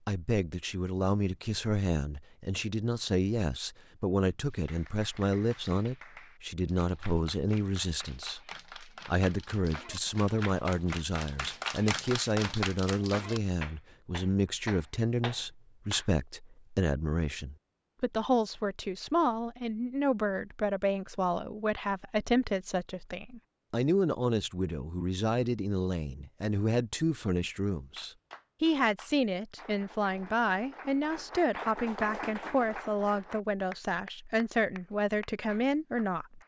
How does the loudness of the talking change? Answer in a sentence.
The volume of the talking stays about the same.